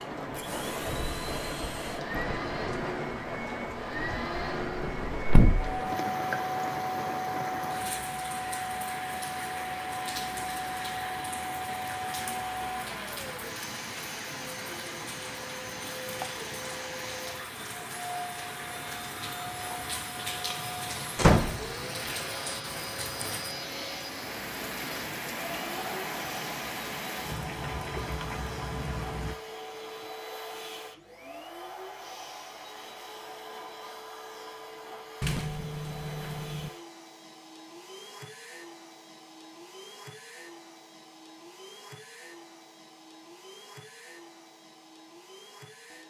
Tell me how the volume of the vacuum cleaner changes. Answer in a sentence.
The loudness of the vacuum cleaner goes down.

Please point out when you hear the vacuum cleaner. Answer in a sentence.
The vacuum cleaner can be heard from 0.0 to 46.0 s.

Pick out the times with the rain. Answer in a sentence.
You can hear the rain from 0.0 to 29.4 s.